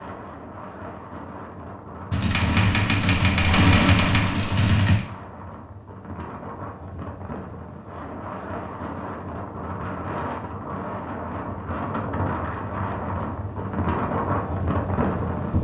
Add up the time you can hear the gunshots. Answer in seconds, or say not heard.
3 s.